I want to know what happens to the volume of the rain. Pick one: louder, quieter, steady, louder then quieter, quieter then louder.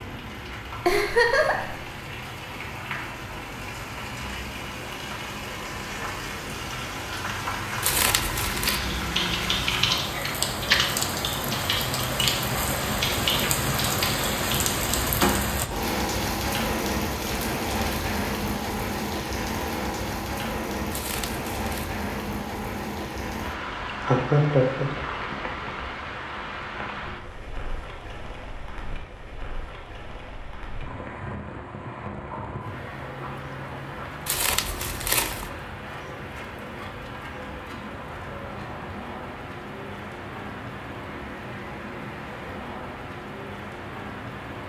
louder then quieter.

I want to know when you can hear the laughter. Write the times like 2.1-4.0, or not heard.
0.8-1.8, 24.0-24.9.